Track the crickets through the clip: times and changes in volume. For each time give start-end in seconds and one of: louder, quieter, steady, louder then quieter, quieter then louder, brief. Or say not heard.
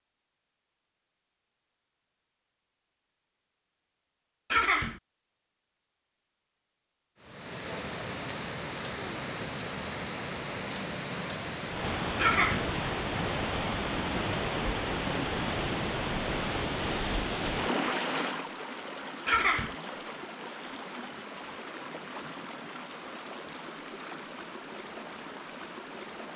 not heard.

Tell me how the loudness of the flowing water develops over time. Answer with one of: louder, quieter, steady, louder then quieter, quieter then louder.
quieter.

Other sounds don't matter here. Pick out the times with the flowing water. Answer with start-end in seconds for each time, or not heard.
7.2-26.3.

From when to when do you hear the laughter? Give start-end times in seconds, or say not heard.
4.5-5.0, 12.2-12.7, 19.2-19.8.